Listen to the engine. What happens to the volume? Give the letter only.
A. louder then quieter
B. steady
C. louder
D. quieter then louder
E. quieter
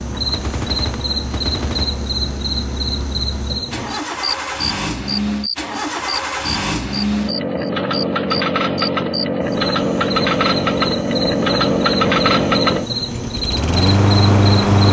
C.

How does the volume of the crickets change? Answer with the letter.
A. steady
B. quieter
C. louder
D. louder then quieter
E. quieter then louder
A.